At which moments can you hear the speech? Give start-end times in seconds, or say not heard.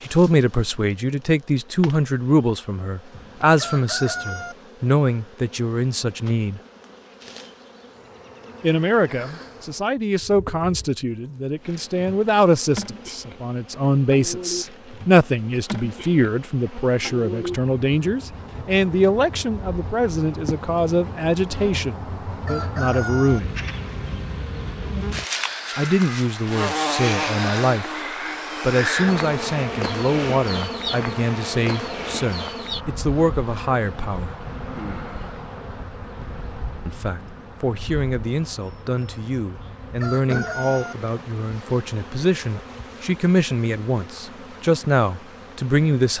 0.1-6.6, 8.6-23.6, 25.8-27.9, 28.6-34.4, 36.9-46.1.